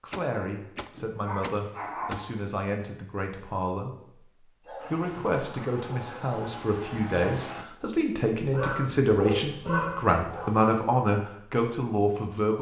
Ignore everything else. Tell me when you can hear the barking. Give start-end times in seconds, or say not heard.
0.3-2.4, 4.7-6.5, 8.5-10.8.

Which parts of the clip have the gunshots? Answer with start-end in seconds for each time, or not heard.
0.1-2.2.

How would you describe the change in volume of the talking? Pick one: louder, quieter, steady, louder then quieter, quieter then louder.
louder.